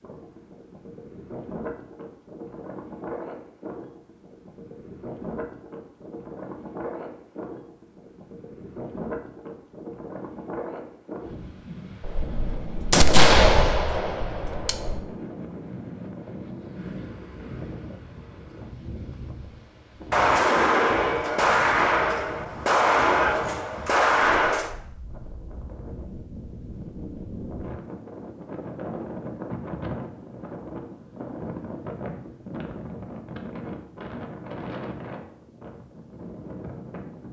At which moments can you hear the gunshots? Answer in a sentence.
You can hear the gunshots from 12.0 to 14.9 s and from 20.1 to 24.7 s.